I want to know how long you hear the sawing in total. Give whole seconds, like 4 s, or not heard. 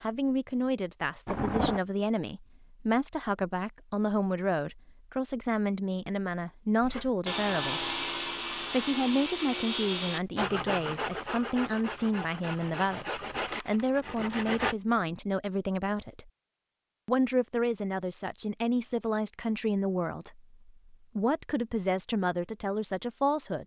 8 s.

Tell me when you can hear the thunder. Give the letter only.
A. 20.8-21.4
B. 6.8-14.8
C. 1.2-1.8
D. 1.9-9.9
C.